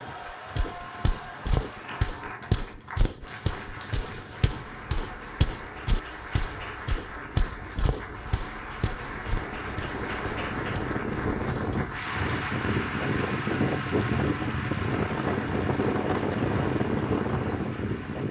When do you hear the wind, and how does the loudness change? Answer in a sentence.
You can hear the wind from 0.0 to 18.2 s, getting louder.